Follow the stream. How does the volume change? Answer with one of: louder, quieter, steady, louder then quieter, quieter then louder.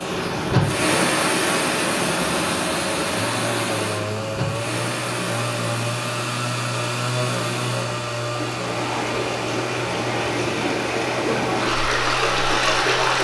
quieter then louder.